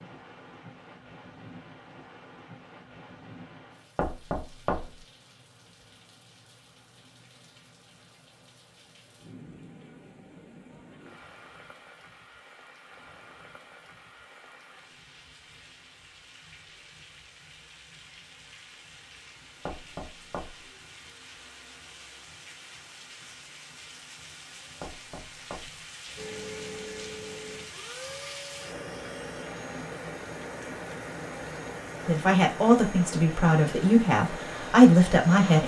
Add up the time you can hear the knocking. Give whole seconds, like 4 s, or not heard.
3 s.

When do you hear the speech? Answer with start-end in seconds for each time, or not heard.
32.0-35.6.